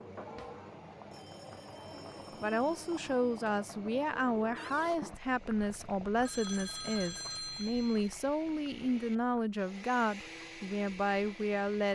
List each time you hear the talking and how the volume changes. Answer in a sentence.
You can hear the talking from 2.4 to 11.9 s, at a steady volume.